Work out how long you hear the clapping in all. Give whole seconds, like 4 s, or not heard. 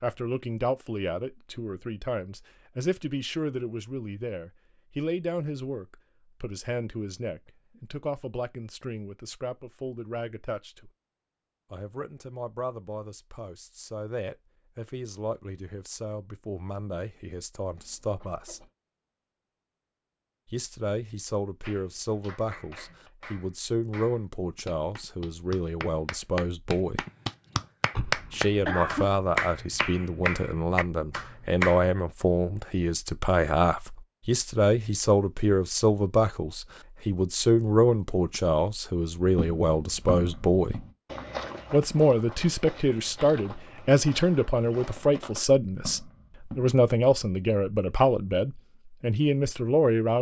10 s.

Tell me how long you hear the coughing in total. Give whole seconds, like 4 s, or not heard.
2 s.